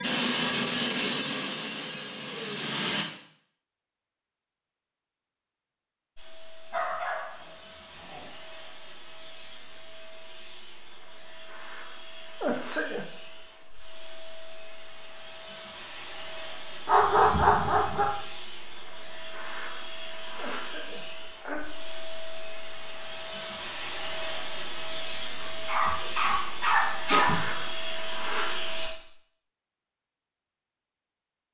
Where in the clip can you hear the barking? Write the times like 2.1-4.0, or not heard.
6.7-8.3, 16.9-18.1, 25.6-27.4.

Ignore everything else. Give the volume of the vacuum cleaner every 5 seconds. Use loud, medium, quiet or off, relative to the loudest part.
loud, quiet, quiet, quiet, medium, medium, off.